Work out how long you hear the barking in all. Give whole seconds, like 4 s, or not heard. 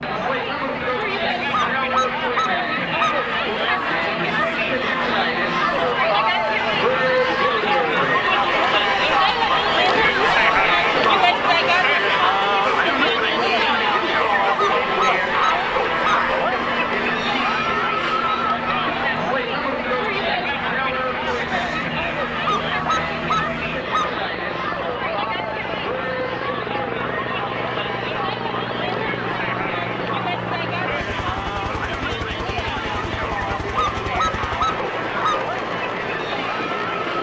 7 s.